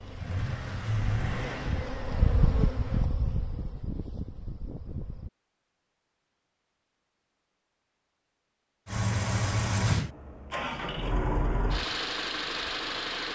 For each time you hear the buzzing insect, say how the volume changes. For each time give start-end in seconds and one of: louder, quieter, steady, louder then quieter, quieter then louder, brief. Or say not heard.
0.0-5.3 louder then quieter.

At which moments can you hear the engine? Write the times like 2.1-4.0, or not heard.
0.0-3.1, 8.8-13.3.